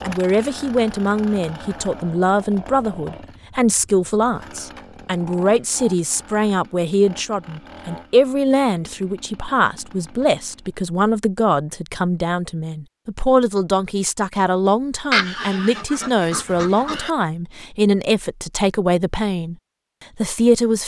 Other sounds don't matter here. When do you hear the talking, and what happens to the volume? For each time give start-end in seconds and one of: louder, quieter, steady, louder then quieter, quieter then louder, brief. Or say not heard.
0.0-19.6 steady
20.1-20.8 brief.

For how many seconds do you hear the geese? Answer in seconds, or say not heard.
2 s.